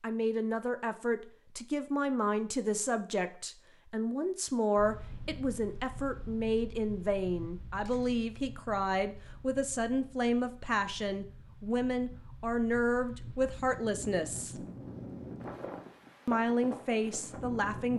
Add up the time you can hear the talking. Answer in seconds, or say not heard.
16 s.